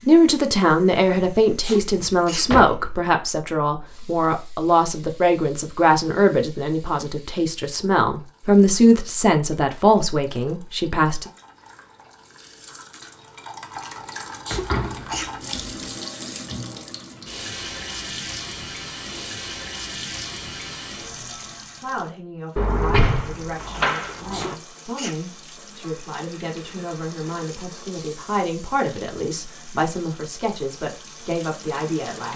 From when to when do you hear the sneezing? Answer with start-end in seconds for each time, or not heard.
1.6-2.5, 14.4-15.3, 24.3-25.2.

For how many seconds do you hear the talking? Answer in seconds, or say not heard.
22 s.